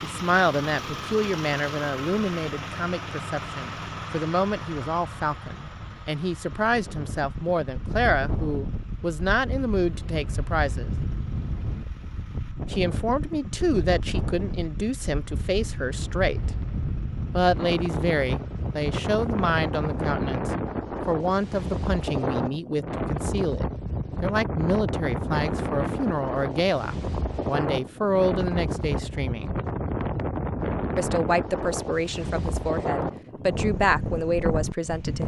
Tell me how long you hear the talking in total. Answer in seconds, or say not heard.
31 s.